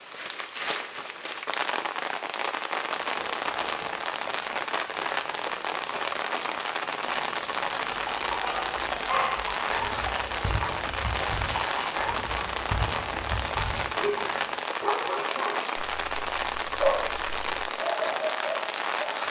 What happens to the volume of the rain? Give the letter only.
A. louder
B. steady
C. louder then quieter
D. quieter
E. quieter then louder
B.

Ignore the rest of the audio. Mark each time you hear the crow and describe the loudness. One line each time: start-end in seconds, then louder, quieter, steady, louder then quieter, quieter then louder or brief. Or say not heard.
not heard.